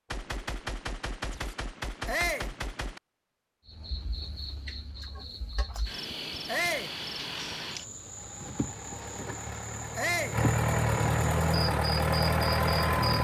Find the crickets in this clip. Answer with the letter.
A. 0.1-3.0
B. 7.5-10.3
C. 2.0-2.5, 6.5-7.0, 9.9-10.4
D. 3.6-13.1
D.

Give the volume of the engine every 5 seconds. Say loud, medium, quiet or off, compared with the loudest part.
off, quiet, loud.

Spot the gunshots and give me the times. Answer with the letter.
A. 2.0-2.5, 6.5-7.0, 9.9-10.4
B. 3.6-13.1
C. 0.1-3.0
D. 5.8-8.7
C.